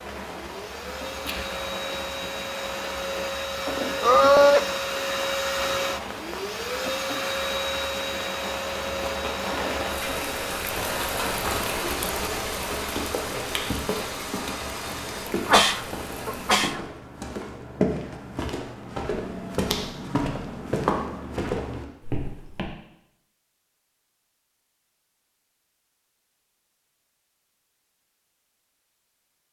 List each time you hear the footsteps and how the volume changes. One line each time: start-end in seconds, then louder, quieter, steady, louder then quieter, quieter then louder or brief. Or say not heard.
10.7-22.7 louder.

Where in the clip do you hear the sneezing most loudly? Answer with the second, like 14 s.
4 s.